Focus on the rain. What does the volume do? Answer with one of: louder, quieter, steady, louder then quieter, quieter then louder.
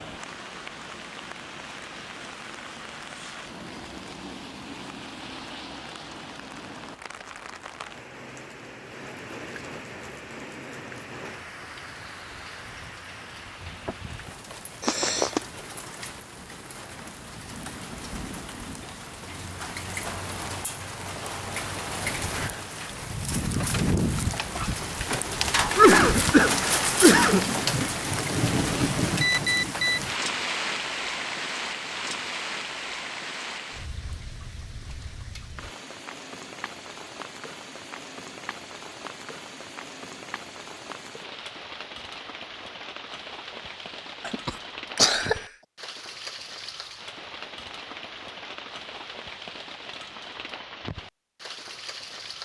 louder then quieter.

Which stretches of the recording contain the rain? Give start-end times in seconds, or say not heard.
0.0-52.4.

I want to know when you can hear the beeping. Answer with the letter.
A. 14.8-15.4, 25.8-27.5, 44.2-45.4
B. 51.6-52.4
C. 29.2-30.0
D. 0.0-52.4
C.